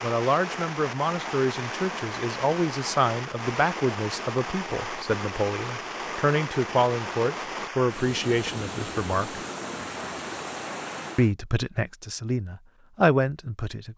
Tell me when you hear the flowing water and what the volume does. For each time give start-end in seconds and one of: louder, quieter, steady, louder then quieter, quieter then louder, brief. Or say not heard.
0.0-11.3 steady.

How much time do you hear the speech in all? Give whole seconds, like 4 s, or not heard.
12 s.